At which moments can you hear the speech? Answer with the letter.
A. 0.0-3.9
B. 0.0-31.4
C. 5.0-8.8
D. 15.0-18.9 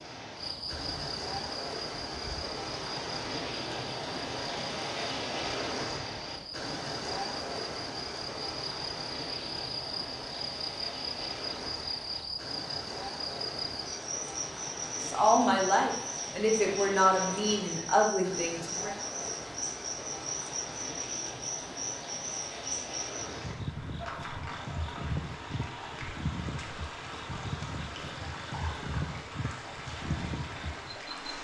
D.